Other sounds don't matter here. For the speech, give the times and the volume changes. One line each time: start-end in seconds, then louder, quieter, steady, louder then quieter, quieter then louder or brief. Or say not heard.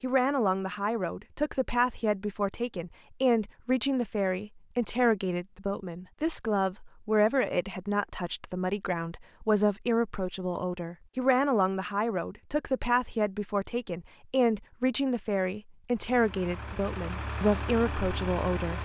0.0-18.7 steady.